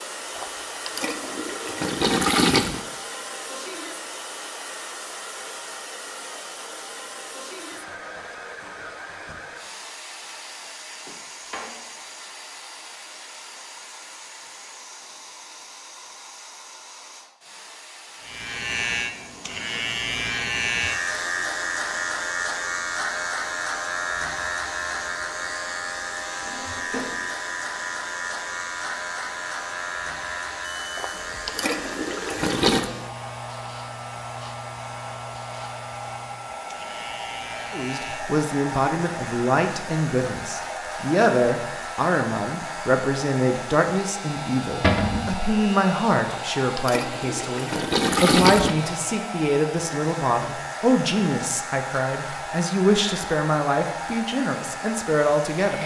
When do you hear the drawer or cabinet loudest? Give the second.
45 s.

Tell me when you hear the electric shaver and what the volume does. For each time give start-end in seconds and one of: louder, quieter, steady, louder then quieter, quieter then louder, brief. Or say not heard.
18.2-55.8 quieter.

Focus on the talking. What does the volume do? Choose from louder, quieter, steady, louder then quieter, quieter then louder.
steady.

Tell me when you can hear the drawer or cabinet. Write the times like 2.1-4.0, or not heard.
11.1-11.8, 26.4-27.3, 44.8-45.3.